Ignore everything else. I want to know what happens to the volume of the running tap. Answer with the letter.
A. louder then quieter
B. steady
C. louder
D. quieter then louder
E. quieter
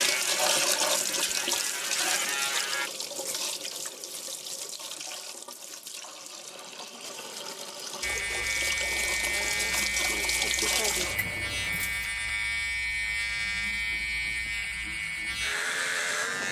D.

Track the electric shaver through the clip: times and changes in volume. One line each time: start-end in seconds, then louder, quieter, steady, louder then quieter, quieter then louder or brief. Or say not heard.
0.0-2.9 brief
8.0-16.4 steady.